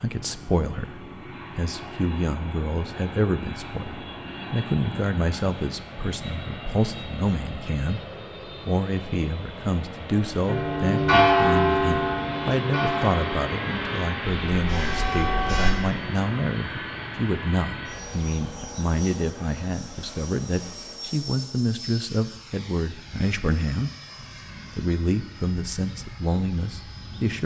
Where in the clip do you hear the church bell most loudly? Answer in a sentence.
The loudest moment of the church bell is at 11 seconds.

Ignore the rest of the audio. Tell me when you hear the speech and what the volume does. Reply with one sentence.
The speech can be heard from 0.0 to 23.9 s, at a steady volume; and briefly from 24.8 to 27.4 s.